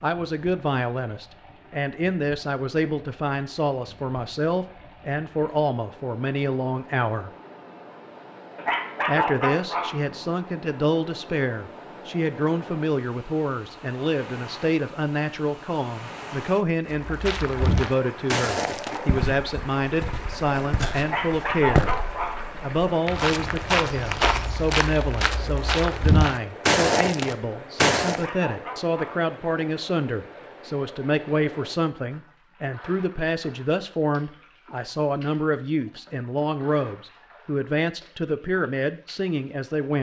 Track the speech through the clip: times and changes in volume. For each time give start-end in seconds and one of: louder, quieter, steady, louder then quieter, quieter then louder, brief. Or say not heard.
0.0-7.3 steady
9.1-21.9 steady
22.6-39.9 steady.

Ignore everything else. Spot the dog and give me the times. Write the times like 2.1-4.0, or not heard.
8.6-10.2, 21.0-22.6, 28.1-29.2.